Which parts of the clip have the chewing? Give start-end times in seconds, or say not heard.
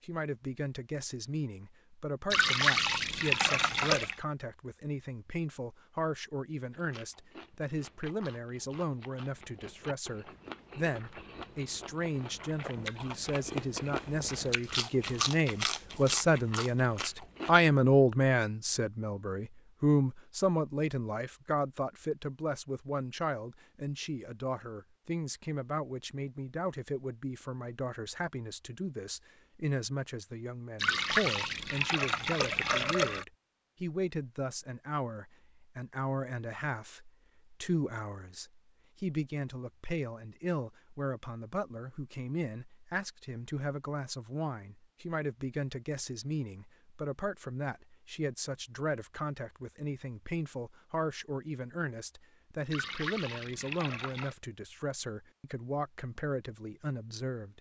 6.7-17.7.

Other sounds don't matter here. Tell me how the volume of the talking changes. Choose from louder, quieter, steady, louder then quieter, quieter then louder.
louder then quieter.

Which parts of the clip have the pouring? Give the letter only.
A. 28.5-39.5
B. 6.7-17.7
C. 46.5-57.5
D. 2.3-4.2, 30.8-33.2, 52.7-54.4
D.